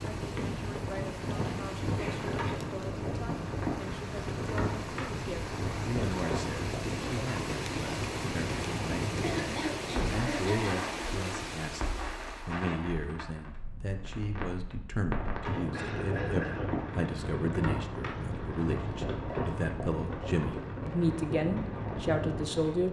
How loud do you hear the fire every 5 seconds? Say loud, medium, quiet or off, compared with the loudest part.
loud, loud, medium, loud, loud.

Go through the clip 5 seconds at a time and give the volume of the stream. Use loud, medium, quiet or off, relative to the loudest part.
medium, loud, loud, off, off.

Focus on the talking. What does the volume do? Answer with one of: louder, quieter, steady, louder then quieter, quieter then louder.
louder.